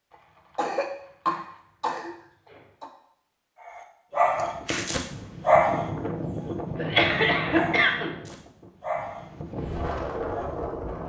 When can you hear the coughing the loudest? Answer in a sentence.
The loudest moment of the coughing is at 7 seconds.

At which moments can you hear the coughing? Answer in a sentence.
The coughing can be heard from 0.1 to 2.9 s and from 6.8 to 8.2 s.